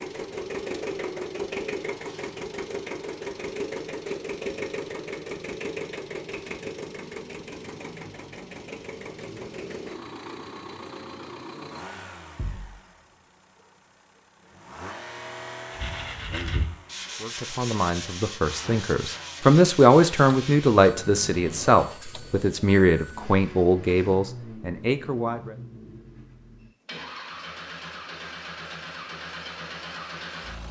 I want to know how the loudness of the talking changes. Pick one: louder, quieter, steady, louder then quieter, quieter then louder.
louder then quieter.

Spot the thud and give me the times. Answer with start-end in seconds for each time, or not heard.
12.3-12.8.